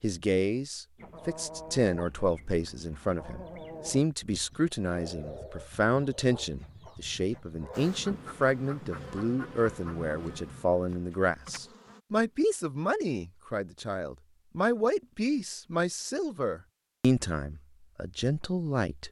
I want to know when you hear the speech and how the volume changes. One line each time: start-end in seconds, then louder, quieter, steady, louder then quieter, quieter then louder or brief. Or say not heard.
0.0-19.0 steady.